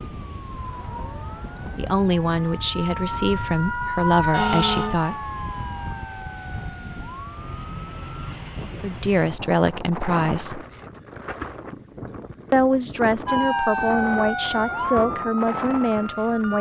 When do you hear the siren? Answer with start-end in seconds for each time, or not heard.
0.1-8.3, 13.2-16.5.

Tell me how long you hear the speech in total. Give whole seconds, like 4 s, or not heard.
9 s.